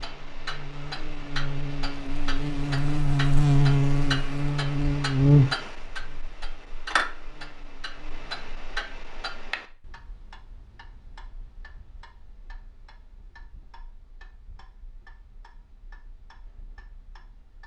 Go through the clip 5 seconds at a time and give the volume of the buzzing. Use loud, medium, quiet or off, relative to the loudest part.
loud, loud, off, off.